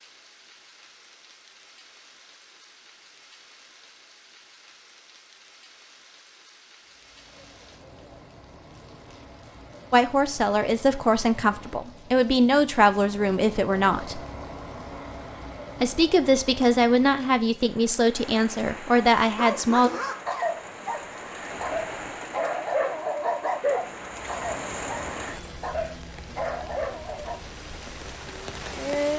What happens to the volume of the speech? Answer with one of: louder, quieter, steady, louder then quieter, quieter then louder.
steady.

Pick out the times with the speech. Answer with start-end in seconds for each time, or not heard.
9.9-14.2, 15.8-19.9.